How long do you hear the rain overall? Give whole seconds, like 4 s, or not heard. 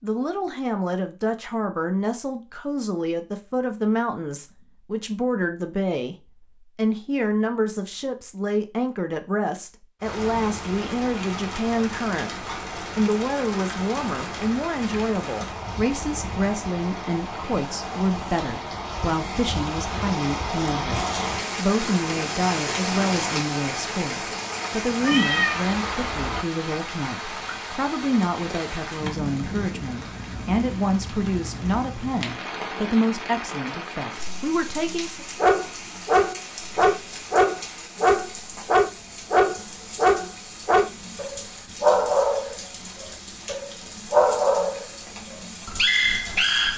37 s.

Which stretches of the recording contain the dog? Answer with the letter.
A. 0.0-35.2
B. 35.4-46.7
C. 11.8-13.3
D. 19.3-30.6
B.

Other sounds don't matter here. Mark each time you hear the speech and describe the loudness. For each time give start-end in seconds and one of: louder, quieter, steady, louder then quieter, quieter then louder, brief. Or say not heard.
0.0-35.2 steady.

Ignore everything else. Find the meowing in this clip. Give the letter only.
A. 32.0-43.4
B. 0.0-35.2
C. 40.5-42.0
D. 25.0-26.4
D.